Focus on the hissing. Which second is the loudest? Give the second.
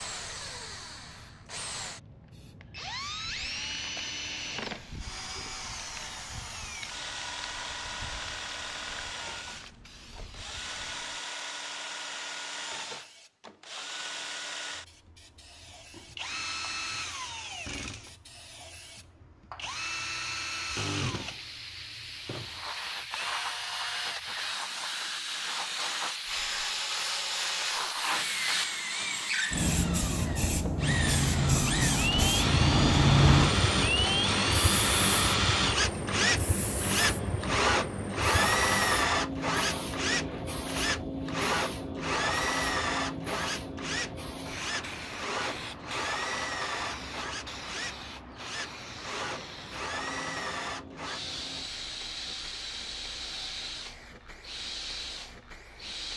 33 s.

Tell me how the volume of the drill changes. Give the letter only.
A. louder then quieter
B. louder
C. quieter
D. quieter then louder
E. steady
A.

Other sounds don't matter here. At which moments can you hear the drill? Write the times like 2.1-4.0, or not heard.
0.0-56.1.